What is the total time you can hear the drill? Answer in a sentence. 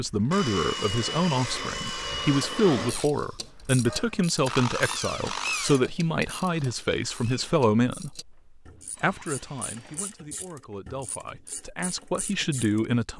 The drill can be heard for 11 seconds in total.